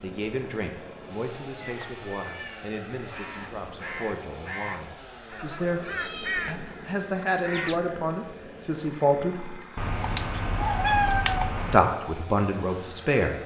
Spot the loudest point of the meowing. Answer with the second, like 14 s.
11 s.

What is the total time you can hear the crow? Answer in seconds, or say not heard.
5 s.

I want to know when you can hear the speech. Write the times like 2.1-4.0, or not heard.
0.0-5.8, 6.5-9.6, 11.7-13.3.